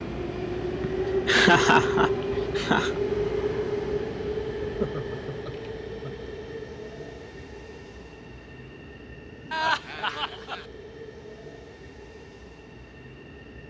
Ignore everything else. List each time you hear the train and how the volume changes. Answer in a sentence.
The train can be heard from 0.0 to 13.6 s, getting quieter.